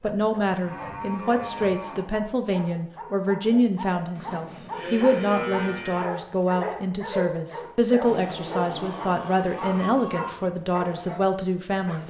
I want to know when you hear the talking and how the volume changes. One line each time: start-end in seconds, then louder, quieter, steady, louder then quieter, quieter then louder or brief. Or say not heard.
0.0-12.0 steady.